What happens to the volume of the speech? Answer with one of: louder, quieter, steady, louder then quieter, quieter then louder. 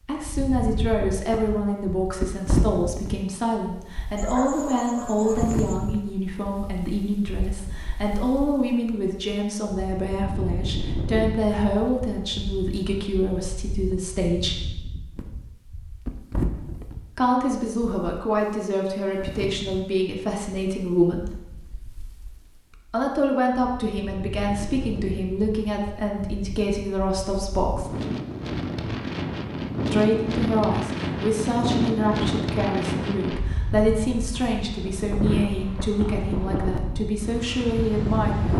steady.